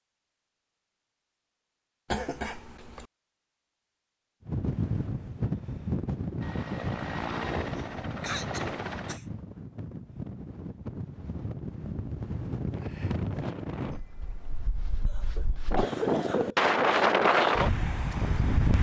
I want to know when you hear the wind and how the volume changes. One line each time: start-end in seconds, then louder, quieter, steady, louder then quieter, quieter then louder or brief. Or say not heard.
4.5-18.7 quieter then louder.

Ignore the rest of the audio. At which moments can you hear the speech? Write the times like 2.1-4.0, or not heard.
not heard.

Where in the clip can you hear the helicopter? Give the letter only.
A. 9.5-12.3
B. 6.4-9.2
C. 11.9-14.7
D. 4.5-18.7
B.